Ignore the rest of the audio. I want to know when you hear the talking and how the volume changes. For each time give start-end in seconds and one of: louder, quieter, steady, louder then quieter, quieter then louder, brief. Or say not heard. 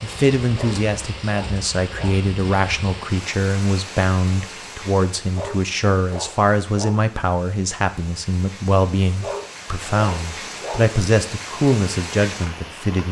0.0-13.0 steady.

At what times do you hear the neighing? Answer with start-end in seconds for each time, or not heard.
not heard.